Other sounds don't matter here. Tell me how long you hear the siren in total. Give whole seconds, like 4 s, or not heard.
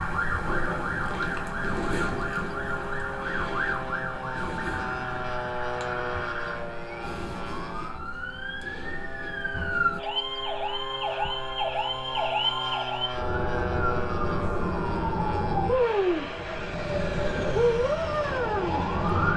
19 s.